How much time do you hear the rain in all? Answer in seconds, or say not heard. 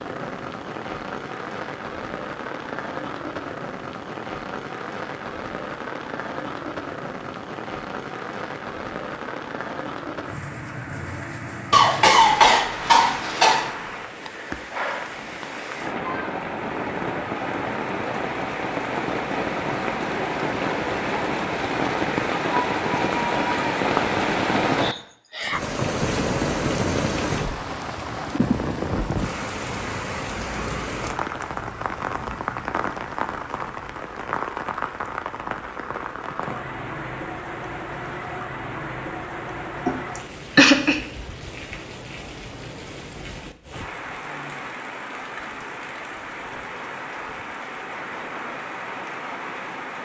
50 s.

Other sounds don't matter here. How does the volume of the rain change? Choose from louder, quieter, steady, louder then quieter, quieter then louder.
louder then quieter.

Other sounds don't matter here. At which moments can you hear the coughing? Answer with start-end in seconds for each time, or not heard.
11.7-13.7, 39.9-41.0.